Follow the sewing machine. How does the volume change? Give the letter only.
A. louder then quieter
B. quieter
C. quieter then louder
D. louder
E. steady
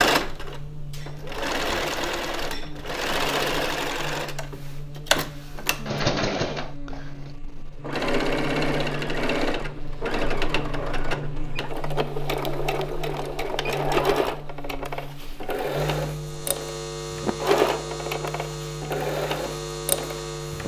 E.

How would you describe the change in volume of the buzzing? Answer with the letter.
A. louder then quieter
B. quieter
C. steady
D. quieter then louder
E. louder
E.